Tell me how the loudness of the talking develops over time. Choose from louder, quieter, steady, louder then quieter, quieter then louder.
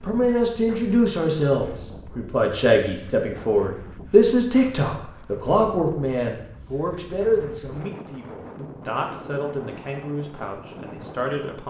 quieter.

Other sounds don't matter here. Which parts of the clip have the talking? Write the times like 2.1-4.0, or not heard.
0.0-11.6.